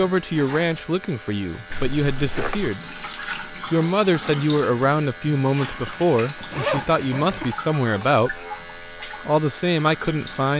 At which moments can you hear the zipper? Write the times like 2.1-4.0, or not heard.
1.7-2.8, 5.7-7.5.